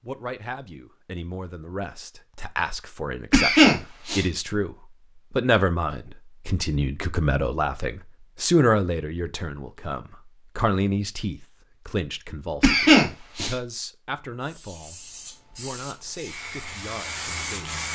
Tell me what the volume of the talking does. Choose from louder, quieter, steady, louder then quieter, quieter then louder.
louder then quieter.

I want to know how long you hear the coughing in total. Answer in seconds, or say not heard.
2 s.